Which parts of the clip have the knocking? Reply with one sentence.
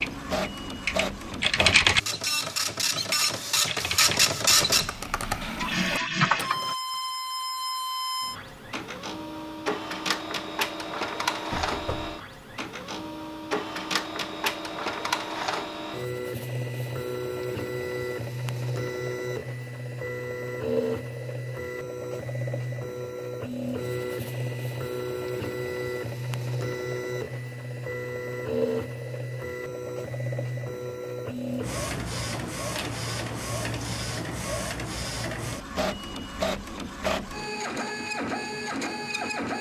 The knocking can be heard from 11.5 to 12.2 s.